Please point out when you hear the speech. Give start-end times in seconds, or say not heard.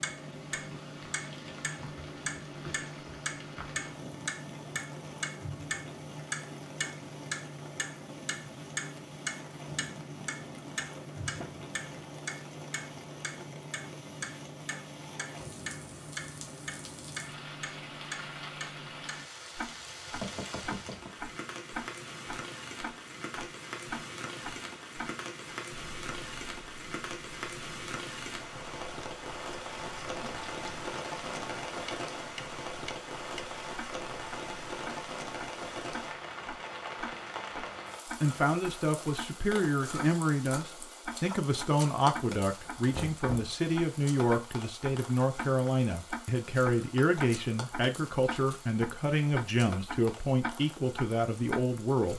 38.2-52.1.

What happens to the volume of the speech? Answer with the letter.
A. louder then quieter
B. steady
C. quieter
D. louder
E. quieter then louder
B.